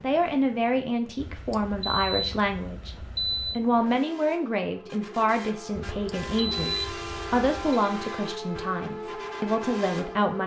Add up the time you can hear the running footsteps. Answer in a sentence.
You can't hear the running footsteps here.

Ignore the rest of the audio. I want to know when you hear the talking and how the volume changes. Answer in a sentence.
The talking can be heard briefly from 0.0 to 3.0 s; and from 3.5 to 10.4 s, at a steady volume.